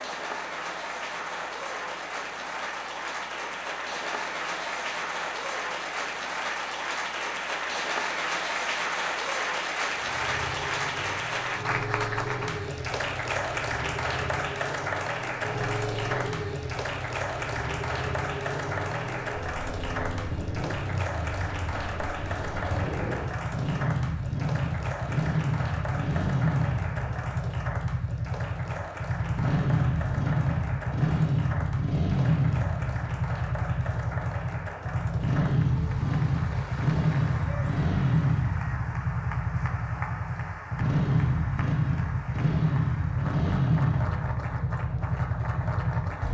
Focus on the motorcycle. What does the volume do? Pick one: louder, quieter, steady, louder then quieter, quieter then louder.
louder.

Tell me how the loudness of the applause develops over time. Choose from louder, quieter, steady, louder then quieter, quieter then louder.
quieter.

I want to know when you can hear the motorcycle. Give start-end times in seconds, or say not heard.
9.9-46.2.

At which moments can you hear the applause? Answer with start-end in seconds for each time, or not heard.
0.0-46.2.